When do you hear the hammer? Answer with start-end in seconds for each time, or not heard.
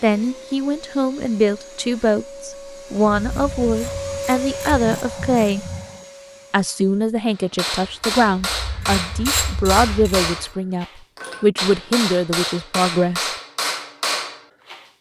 7.3-14.8.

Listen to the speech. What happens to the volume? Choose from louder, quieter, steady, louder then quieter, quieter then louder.
steady.